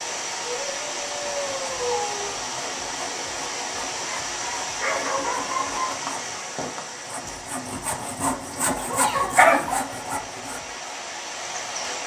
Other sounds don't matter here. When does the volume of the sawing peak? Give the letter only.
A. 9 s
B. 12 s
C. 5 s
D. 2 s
A.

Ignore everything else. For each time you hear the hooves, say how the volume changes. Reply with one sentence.
The hooves can't be heard in this clip.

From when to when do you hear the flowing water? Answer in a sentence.
The flowing water can be heard from 0.0 to 12.0 s.